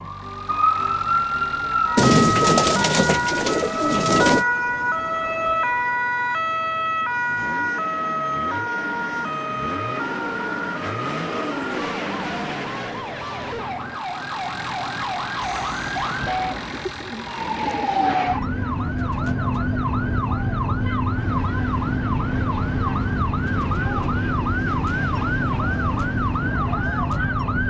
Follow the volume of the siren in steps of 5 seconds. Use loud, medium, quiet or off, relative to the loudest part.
loud, loud, medium, loud, loud, loud.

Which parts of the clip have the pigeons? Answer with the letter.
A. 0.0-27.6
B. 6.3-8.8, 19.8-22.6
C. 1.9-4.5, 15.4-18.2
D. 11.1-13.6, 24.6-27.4
C.